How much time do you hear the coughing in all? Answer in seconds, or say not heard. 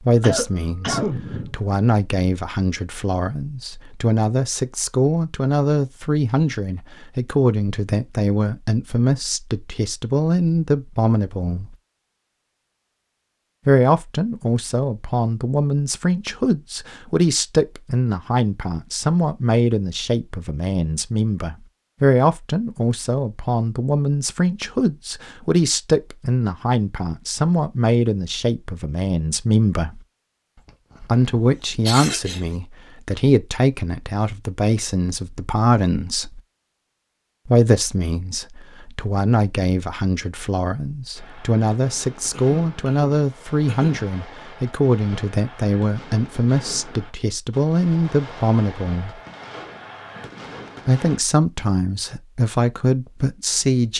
5 s.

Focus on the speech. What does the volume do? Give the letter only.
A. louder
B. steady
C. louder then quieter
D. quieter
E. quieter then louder
B.